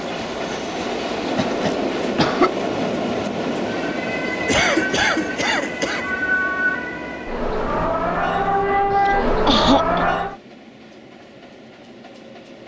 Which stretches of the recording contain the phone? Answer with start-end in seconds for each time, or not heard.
not heard.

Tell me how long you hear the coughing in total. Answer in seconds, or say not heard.
4 s.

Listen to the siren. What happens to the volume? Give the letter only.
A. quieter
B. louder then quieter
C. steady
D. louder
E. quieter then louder
D.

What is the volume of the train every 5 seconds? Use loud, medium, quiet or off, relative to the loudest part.
loud, medium, quiet.